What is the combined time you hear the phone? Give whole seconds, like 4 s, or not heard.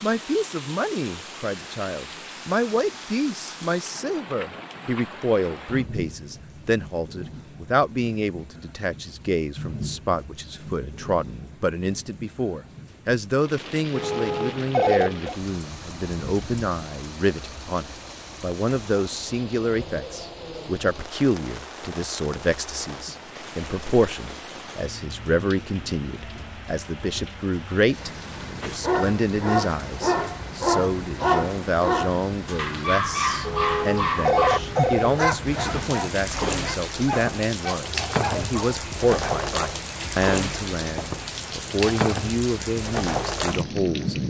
3 s.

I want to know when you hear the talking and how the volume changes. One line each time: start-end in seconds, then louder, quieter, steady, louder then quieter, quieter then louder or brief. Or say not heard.
0.0-44.2 steady.